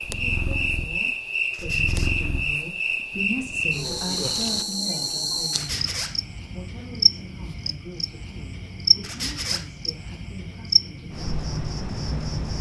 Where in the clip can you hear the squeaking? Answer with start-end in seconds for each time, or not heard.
1.5-2.1, 5.5-6.2, 9.0-9.7.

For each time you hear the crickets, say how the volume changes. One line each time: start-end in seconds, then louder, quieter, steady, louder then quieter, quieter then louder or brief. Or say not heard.
0.0-12.5 steady.